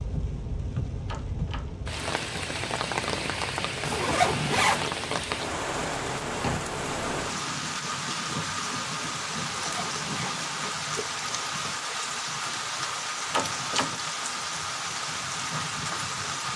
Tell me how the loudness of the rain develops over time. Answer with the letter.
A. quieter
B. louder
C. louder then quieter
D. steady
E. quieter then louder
D.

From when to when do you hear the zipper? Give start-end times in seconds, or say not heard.
3.9-4.9, 9.4-11.4.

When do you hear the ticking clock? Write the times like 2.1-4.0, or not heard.
not heard.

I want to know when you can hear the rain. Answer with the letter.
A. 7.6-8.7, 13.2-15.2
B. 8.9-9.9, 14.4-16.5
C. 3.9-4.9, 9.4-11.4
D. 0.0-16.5
D.